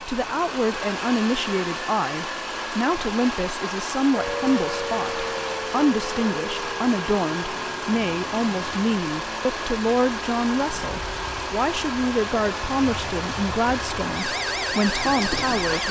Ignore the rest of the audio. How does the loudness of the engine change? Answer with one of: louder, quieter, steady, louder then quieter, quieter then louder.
steady.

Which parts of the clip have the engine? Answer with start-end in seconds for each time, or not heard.
0.0-15.8.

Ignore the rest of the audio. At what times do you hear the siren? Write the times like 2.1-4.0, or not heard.
4.2-15.8.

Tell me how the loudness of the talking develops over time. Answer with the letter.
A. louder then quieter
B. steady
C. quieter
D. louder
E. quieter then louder
B.